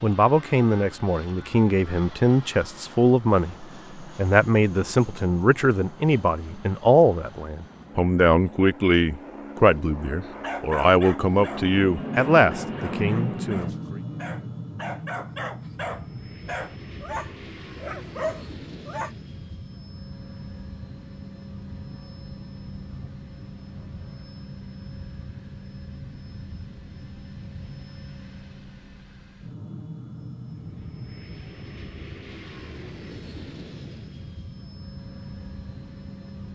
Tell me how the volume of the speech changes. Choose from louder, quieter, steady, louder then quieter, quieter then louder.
steady.